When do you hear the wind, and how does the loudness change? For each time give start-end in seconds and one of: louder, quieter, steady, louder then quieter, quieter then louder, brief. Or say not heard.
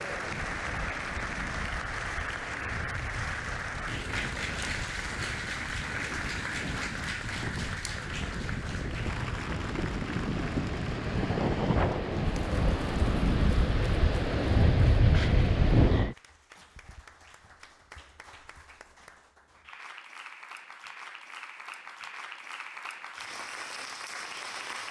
0.0-16.1 louder.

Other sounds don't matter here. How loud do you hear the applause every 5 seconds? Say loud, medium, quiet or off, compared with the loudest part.
loud, loud, medium, quiet, medium.